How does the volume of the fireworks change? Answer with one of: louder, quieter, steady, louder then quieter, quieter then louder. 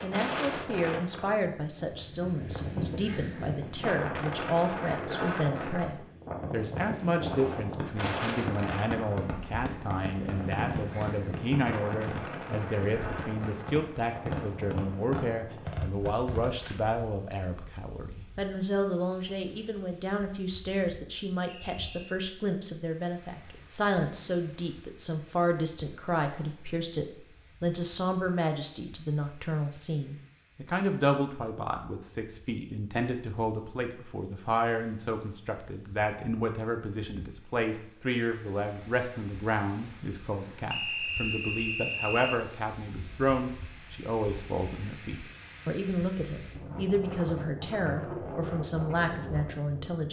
steady.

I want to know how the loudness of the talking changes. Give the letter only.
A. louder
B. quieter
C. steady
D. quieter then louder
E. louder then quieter
C.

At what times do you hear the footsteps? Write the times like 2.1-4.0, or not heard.
not heard.